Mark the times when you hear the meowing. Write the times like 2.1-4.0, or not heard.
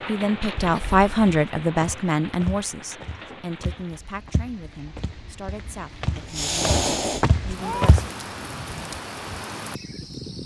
0.7-1.1, 6.2-7.9.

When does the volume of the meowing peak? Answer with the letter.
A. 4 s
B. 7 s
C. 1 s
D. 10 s
B.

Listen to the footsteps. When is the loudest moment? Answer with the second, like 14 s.
8 s.